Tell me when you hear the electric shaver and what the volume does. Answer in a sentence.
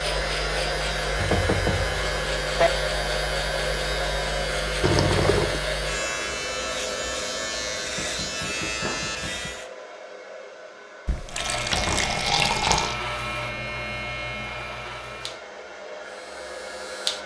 You can hear the electric shaver from 0.0 to 9.7 s, at a steady volume; and from 11.2 to 17.2 s, getting quieter.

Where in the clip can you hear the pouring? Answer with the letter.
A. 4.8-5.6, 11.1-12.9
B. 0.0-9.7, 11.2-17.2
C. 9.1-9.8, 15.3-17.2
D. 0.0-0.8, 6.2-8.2
A.